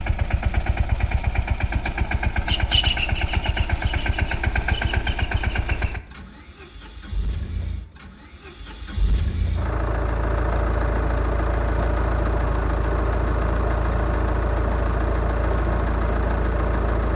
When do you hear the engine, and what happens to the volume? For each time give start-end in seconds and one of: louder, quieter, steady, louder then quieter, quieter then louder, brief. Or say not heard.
0.0-17.1 quieter then louder.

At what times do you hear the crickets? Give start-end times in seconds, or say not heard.
0.1-17.1.